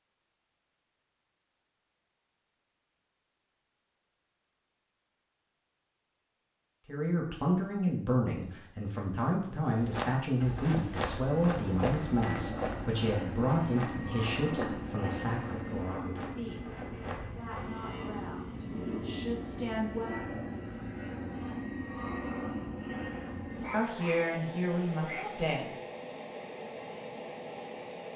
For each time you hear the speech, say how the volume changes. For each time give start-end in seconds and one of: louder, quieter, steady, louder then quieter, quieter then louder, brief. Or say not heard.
6.8-20.1 quieter
23.7-25.8 brief.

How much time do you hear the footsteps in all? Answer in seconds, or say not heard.
8 s.